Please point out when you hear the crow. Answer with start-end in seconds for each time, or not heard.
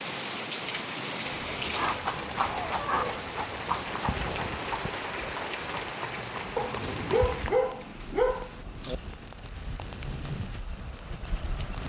not heard.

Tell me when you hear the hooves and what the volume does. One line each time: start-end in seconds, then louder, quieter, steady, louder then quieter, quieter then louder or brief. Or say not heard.
1.6-7.5 quieter.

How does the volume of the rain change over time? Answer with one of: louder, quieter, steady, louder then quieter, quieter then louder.
quieter.